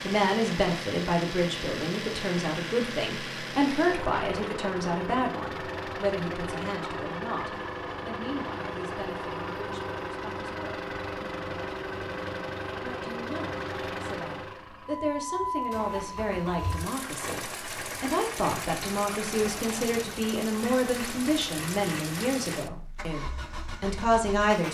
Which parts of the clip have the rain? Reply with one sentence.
You can't hear the rain here.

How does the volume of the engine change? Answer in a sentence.
The loudness of the engine stays about the same.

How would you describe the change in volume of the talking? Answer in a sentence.
The loudness of the talking goes down, then up.